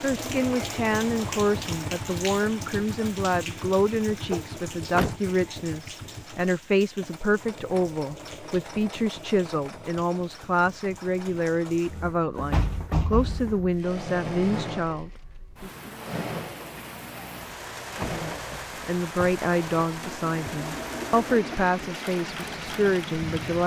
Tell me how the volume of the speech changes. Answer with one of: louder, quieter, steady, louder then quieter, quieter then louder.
steady.